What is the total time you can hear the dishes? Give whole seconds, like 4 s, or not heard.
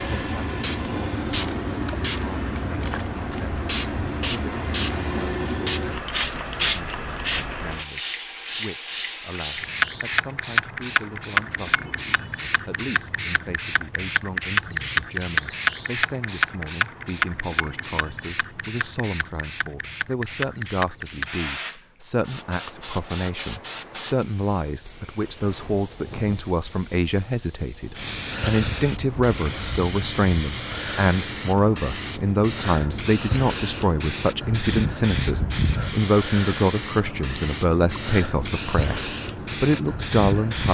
not heard.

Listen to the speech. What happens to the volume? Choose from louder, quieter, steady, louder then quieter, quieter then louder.
louder.